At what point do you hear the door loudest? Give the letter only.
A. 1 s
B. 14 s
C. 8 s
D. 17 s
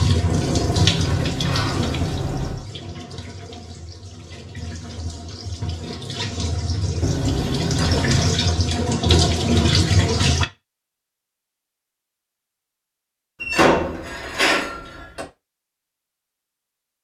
B.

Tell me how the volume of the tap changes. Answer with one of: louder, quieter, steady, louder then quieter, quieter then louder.
quieter then louder.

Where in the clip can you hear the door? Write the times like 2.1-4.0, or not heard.
0.3-2.6, 7.0-8.3, 13.4-15.2.